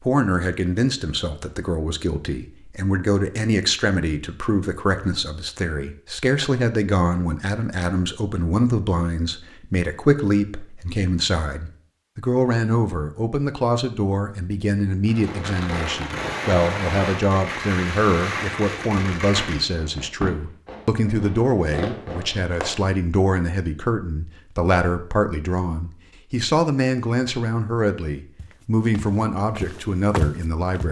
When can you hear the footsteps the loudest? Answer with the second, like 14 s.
30 s.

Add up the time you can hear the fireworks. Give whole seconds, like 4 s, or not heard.
8 s.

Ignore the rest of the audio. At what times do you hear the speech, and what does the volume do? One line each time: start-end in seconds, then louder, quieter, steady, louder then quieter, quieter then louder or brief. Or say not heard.
0.0-30.8 steady.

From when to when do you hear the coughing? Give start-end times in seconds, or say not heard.
not heard.